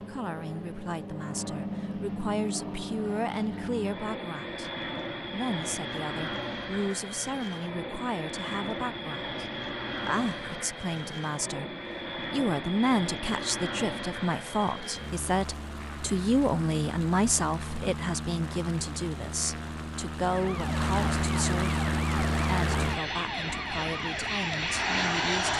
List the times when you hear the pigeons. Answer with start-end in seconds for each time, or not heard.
not heard.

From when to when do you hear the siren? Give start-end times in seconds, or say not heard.
20.2-25.5.